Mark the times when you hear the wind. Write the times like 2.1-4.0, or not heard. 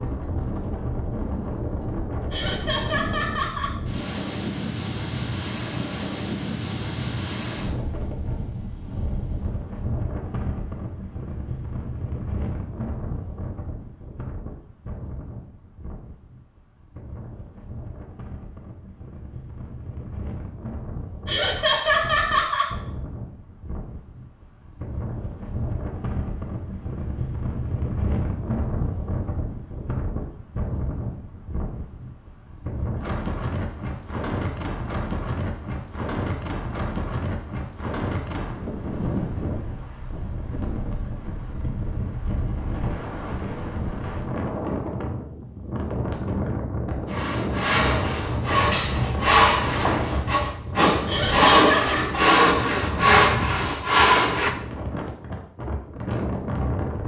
0.0-57.0.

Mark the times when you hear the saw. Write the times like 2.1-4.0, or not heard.
47.0-54.5.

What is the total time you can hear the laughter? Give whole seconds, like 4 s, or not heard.
4 s.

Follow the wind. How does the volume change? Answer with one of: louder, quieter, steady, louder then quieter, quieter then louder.
quieter then louder.